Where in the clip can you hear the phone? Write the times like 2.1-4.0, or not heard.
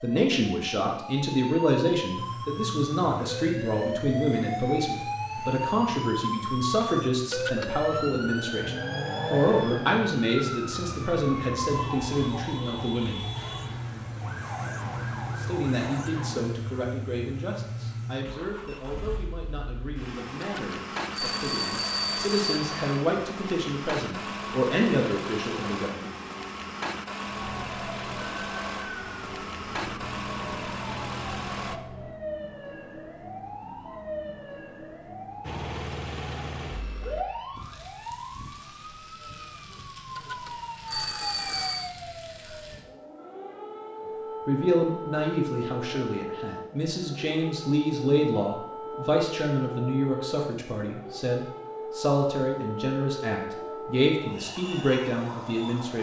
7.3-7.8, 20.4-23.0, 40.1-42.0.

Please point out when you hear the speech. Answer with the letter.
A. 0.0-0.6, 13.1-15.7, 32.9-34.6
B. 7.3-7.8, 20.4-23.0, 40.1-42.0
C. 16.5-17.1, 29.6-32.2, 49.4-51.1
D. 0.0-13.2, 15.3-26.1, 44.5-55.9
D.